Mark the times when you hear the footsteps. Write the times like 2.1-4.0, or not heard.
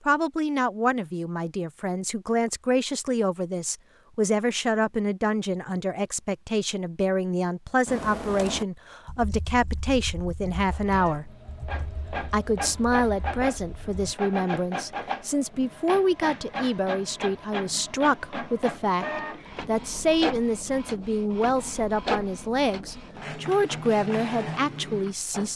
not heard.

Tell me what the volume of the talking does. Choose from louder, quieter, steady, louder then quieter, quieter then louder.
steady.